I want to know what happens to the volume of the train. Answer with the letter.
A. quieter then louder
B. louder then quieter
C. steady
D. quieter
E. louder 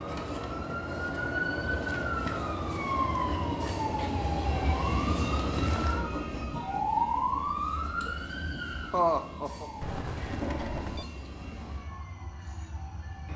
B.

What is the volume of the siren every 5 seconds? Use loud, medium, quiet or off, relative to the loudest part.
loud, loud, quiet.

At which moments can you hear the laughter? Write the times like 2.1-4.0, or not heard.
8.9-9.7.